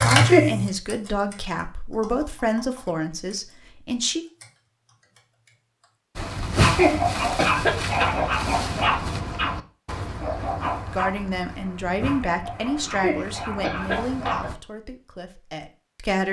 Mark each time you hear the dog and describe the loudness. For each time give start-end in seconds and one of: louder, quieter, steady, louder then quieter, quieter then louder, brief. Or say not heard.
6.2-14.6 quieter.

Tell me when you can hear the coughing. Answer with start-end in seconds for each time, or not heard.
0.1-0.5, 6.7-8.2, 12.8-14.5.